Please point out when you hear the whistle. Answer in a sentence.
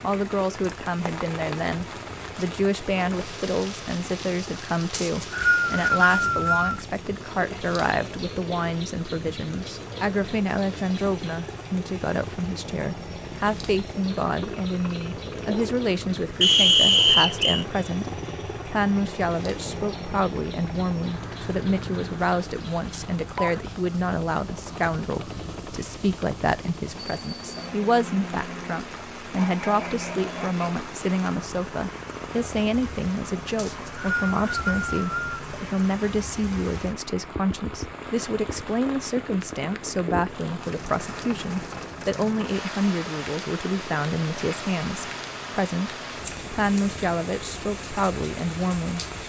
The whistle can be heard from 4.9 to 6.8 s, from 16.4 to 17.6 s and from 33.5 to 35.4 s.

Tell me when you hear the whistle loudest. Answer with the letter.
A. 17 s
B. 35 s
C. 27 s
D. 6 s
A.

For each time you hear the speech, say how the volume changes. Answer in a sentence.
The speech can be heard from 0.0 to 49.0 s, at a steady volume.